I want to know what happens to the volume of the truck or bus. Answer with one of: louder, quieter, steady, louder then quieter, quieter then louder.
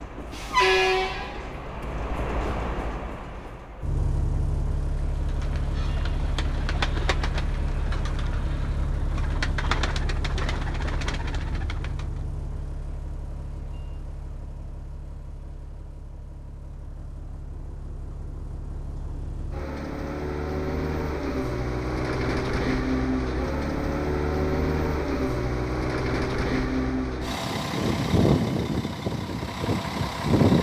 quieter then louder.